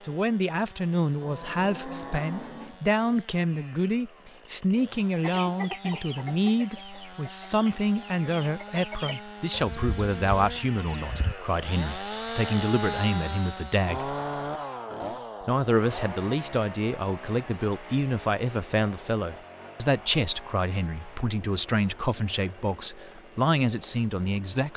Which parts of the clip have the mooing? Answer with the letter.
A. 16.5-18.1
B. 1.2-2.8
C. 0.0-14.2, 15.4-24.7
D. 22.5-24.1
B.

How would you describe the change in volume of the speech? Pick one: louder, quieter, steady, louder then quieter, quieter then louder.
steady.